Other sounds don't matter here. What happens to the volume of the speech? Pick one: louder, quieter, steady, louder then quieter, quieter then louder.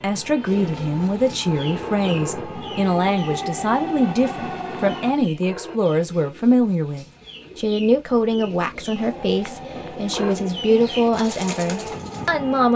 steady.